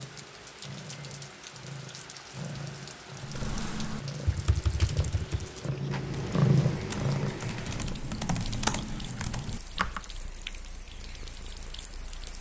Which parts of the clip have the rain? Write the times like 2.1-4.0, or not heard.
0.0-12.3.